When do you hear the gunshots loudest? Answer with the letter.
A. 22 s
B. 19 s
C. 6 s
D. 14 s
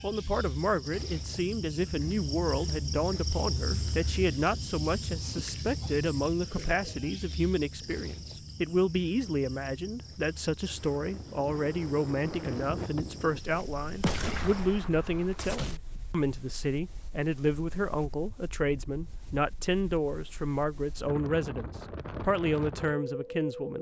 D.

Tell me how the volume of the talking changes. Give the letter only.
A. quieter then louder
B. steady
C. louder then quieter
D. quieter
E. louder
B.